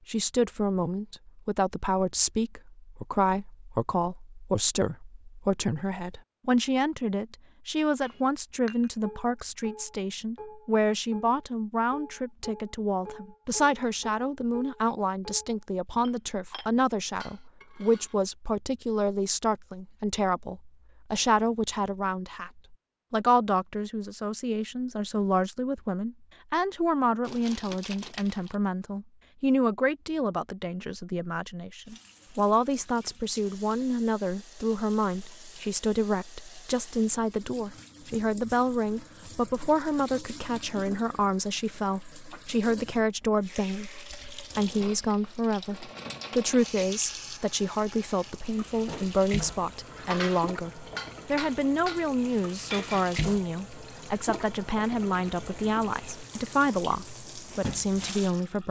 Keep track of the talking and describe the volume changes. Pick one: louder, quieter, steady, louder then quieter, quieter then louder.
steady.